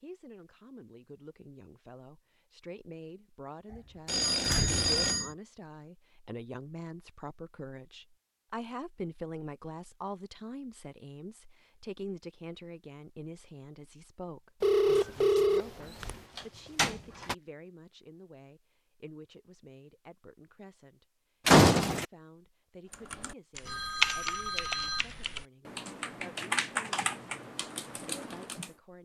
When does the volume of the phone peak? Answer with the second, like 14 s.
15 s.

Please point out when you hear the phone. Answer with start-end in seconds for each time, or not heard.
4.0-5.3, 14.6-16.2, 23.6-25.2.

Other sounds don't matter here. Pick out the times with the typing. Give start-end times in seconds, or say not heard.
22.9-28.7.